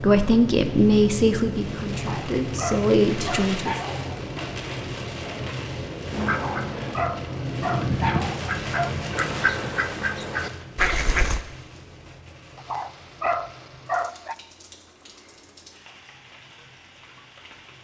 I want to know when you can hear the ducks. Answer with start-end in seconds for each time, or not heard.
6.1-11.4.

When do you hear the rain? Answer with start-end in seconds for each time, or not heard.
0.0-17.7.